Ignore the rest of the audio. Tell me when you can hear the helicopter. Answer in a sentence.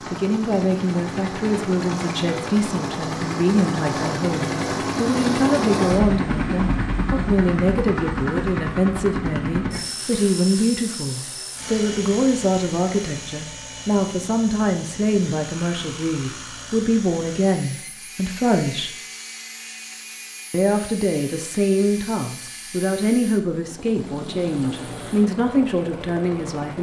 The helicopter can be heard from 0.0 to 26.7 s.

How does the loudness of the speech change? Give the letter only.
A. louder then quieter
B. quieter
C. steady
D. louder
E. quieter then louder
C.